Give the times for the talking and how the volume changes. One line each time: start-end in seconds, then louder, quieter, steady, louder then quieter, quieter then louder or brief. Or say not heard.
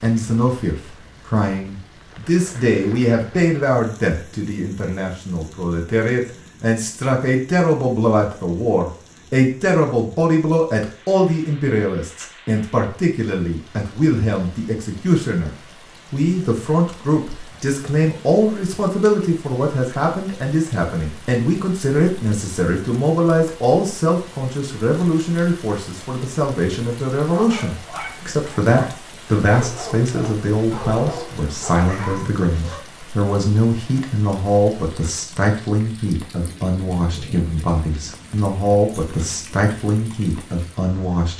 0.0-41.3 steady.